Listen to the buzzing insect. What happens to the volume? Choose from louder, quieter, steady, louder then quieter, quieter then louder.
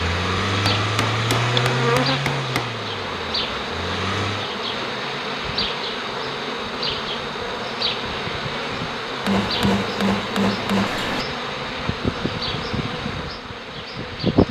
steady.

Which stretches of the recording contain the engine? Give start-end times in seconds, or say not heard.
0.0-4.5.